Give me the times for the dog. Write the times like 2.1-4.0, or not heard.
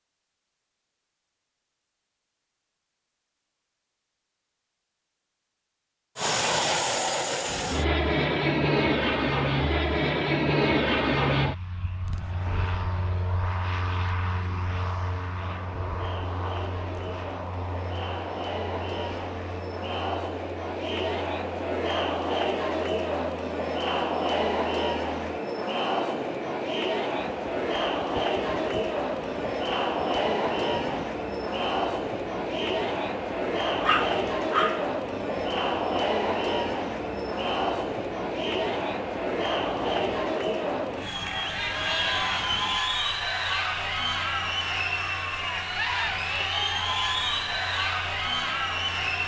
33.8-34.9.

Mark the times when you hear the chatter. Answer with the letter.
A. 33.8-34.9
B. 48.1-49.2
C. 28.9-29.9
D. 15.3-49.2
D.